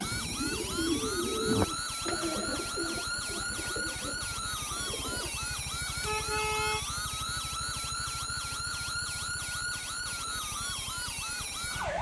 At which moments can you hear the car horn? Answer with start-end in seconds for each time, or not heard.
6.0-6.8.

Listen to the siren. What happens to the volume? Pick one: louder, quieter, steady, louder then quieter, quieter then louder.
steady.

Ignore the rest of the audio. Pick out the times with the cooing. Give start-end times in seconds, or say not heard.
0.0-5.3.